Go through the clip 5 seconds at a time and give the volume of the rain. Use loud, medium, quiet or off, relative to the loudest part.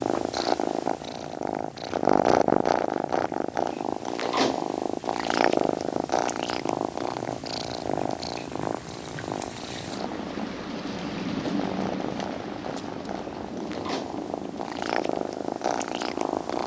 quiet, medium, loud, medium.